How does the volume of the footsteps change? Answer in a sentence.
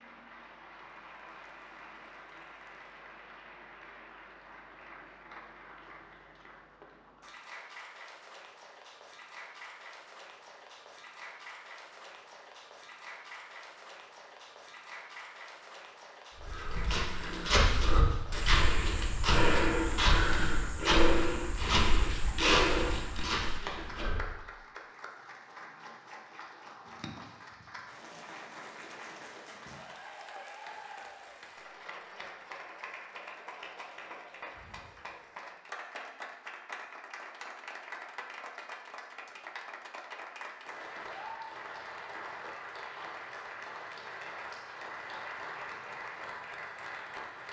The loudness of the footsteps stays about the same.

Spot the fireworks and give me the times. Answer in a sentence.
You can't hear the fireworks here.